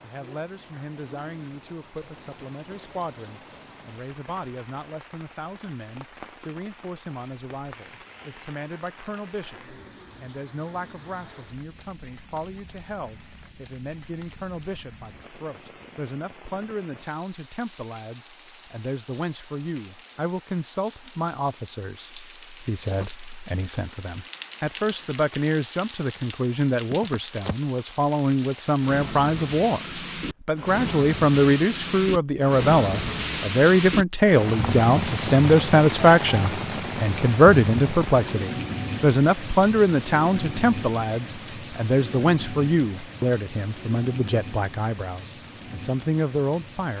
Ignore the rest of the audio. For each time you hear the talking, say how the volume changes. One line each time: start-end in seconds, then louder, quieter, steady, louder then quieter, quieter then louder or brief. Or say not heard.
0.0-46.9 louder.